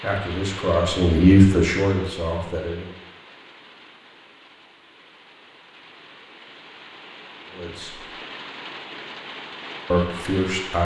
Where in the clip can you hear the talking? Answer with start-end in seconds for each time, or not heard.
0.0-2.9, 7.5-8.0, 9.9-10.7.